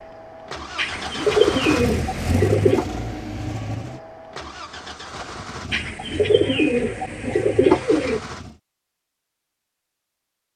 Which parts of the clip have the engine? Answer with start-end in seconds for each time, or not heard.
0.0-8.6.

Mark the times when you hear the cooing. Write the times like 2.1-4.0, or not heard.
0.8-2.9, 5.7-8.2.